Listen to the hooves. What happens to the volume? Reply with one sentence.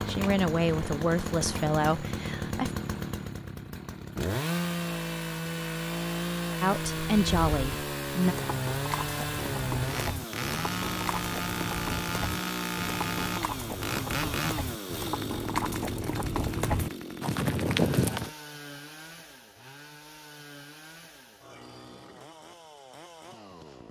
The loudness of the hooves goes up.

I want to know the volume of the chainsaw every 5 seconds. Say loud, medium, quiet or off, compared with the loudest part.
loud, loud, loud, medium, quiet.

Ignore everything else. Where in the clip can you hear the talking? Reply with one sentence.
The talking can be heard from 0.1 to 2.7 s and from 6.6 to 8.3 s.